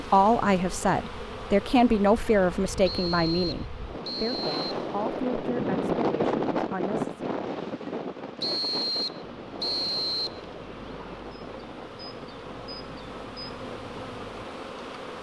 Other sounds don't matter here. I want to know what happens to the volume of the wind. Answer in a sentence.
The loudness of the wind goes up, then down.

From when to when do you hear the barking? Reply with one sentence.
You can't hear the barking here.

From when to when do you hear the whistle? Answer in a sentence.
The whistle can be heard from 2.9 to 4.7 s and from 8.4 to 10.4 s.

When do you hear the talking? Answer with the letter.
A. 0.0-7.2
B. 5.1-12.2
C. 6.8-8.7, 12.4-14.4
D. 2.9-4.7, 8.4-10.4
A.